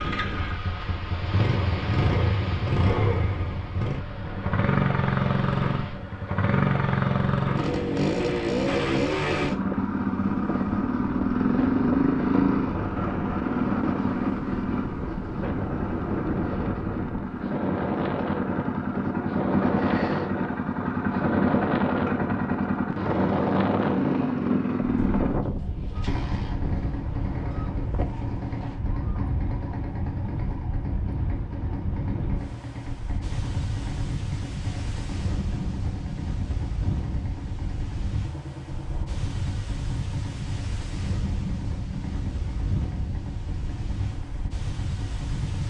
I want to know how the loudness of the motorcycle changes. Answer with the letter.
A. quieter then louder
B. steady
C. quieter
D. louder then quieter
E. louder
C.